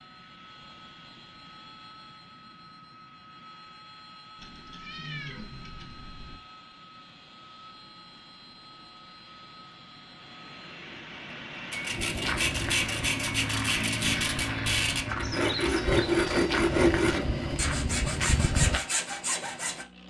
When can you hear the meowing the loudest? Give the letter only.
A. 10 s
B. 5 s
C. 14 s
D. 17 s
B.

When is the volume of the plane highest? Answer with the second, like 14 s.
14 s.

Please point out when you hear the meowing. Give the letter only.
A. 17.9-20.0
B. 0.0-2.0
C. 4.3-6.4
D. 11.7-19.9
C.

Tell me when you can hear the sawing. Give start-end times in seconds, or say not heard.
11.7-19.9.